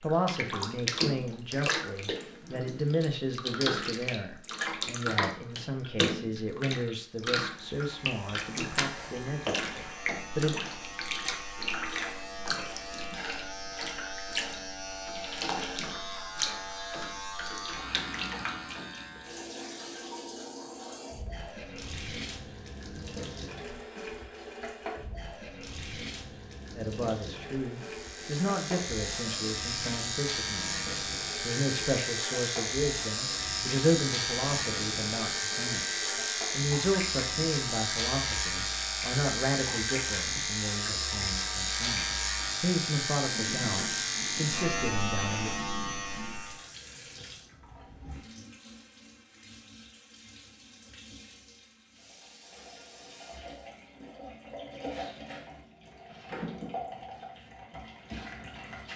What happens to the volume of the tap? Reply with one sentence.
The loudness of the tap goes down.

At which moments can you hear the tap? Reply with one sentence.
You can hear the tap from 0.0 to 58.9 s.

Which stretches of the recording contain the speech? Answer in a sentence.
You can hear the speech from 0.0 to 10.6 s and from 26.8 to 45.5 s.